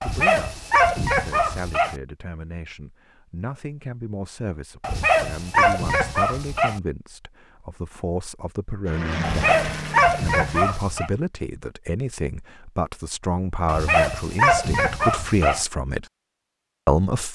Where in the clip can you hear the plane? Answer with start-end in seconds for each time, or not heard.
8.8-10.8.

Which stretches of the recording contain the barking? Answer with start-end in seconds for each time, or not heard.
0.0-1.9, 4.8-6.8, 9.2-11.1, 13.7-15.7.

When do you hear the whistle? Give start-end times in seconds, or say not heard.
not heard.